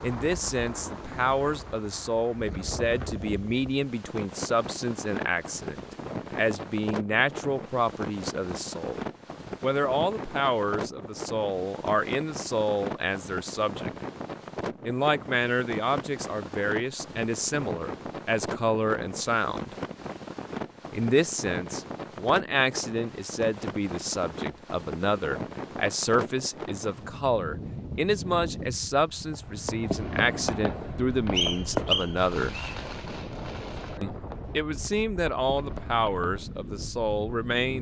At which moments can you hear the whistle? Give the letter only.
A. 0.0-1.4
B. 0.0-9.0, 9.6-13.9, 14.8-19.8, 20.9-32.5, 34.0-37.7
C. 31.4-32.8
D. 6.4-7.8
C.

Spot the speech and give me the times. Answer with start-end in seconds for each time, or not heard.
0.0-9.0, 9.6-13.9, 14.8-19.8, 20.9-32.5, 34.0-37.7.